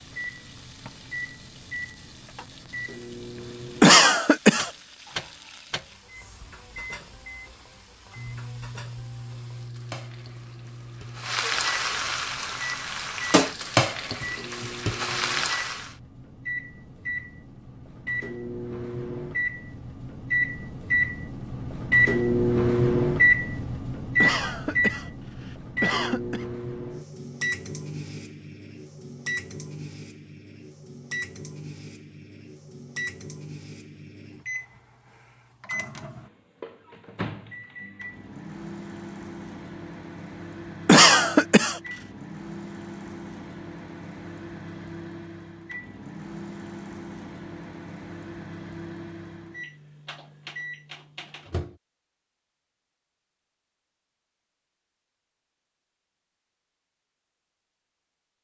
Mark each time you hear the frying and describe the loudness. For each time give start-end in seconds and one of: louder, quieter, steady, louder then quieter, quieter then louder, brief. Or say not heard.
0.0-15.9 louder.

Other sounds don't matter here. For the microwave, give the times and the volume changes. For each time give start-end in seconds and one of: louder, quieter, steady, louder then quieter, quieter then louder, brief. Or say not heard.
0.0-51.8 louder then quieter.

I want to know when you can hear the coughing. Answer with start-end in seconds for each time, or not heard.
3.8-4.7, 24.2-26.4, 40.9-41.8.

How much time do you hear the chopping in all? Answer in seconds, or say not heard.
not heard.